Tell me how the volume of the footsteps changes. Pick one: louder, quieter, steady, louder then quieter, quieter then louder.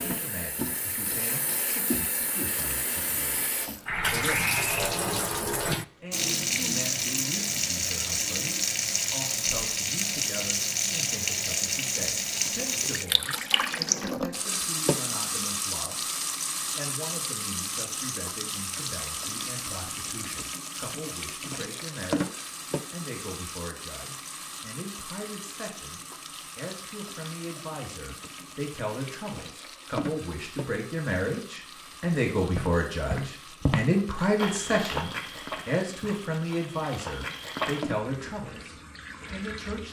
quieter then louder.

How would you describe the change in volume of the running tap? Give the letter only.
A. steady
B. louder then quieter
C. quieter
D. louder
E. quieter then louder
C.